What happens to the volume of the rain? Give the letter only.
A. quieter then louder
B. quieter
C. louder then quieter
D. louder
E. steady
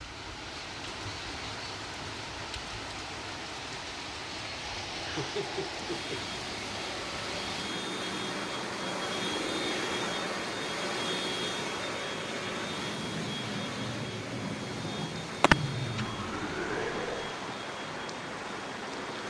E.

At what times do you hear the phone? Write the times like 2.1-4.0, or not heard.
15.4-16.1.